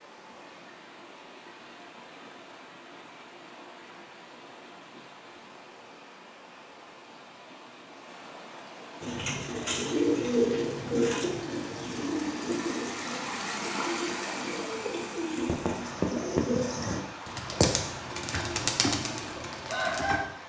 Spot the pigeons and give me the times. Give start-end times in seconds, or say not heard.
9.0-20.2.